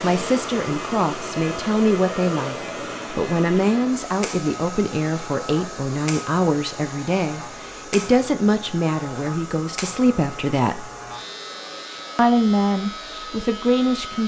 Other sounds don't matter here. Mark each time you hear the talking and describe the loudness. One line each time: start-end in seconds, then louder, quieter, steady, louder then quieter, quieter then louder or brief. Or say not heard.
0.0-10.8 steady
12.2-14.2 brief.